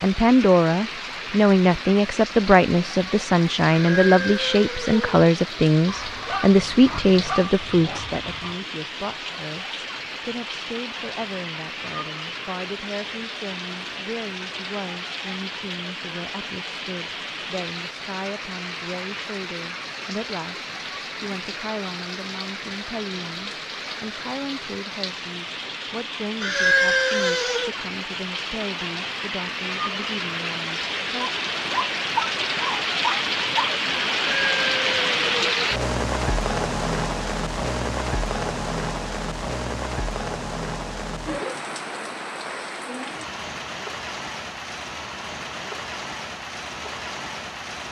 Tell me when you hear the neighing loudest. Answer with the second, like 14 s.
27 s.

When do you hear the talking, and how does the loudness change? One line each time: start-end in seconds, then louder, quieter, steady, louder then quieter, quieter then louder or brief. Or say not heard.
0.0-31.2 quieter.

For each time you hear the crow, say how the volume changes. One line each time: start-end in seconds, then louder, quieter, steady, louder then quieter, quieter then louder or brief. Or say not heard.
not heard.